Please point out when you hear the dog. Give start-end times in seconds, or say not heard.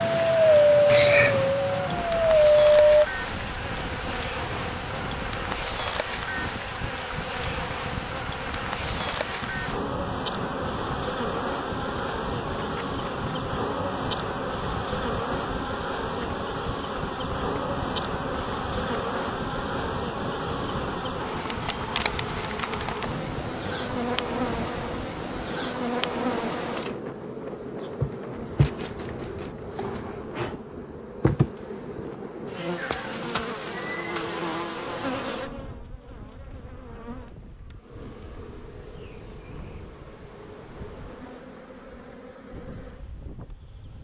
0.0-3.0.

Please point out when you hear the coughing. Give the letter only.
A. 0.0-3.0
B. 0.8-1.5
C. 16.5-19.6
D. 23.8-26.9
B.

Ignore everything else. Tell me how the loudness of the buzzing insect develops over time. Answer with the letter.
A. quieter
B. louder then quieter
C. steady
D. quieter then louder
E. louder
A.